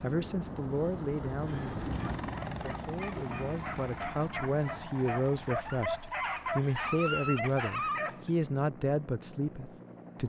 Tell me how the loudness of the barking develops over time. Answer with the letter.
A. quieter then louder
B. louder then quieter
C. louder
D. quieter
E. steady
C.